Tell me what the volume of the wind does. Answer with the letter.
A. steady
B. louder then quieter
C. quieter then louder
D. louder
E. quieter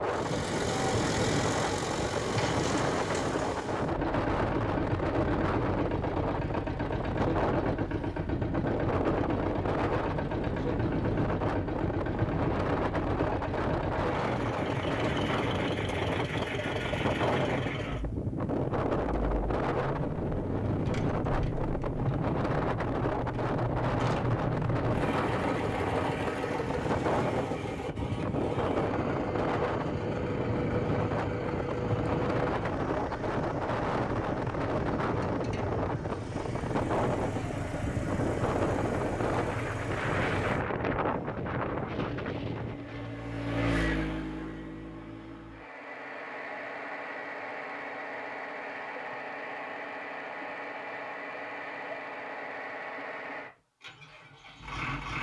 A.